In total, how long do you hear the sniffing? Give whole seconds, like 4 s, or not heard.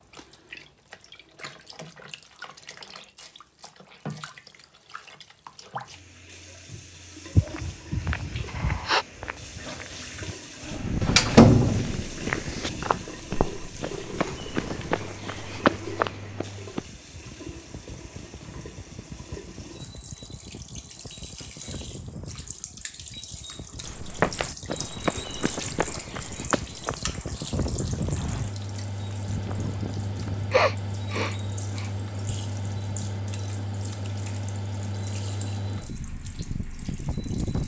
3 s.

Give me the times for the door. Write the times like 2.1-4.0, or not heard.
11.0-12.1.